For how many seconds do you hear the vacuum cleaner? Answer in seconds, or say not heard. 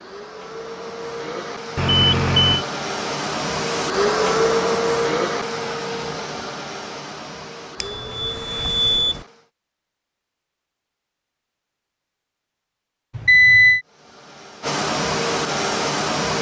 12 s.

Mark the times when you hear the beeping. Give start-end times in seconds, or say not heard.
1.8-2.6, 7.8-9.2, 13.2-13.8.